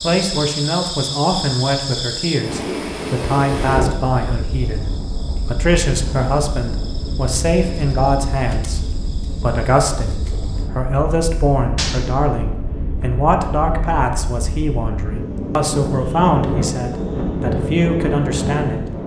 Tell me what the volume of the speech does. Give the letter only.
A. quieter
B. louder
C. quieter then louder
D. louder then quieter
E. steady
E.